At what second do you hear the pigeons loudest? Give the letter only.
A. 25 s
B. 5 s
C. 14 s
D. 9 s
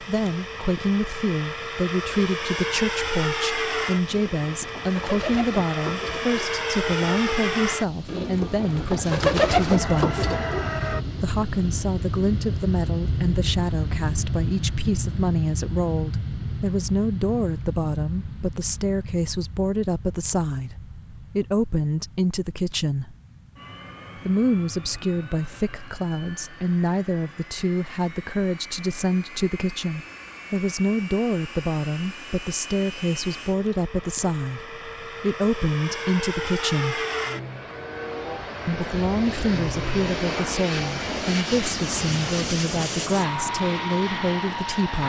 D.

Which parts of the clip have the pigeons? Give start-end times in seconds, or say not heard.
4.1-11.0.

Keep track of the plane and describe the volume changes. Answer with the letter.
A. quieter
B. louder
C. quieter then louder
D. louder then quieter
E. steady
C.